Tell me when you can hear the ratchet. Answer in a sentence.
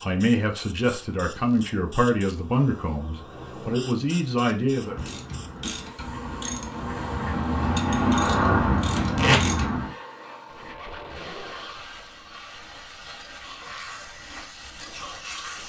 The ratchet can be heard from 4.7 to 9.9 s.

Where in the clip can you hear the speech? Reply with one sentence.
The speech can be heard from 0.0 to 5.2 s.